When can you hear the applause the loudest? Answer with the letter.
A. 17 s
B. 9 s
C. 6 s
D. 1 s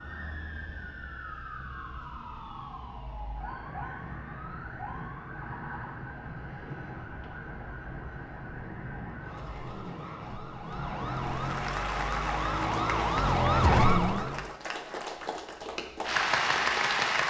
A.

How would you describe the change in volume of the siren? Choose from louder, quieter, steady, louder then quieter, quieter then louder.
louder.